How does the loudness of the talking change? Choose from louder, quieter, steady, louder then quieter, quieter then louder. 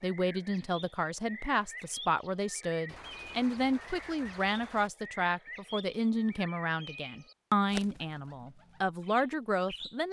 steady.